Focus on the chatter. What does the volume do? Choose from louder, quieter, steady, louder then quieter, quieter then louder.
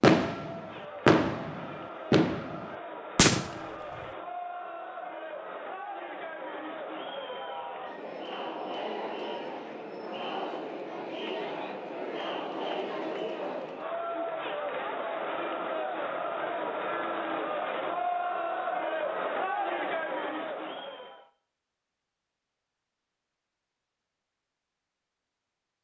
louder.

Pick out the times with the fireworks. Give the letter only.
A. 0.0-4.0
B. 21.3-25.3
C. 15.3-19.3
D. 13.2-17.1
A.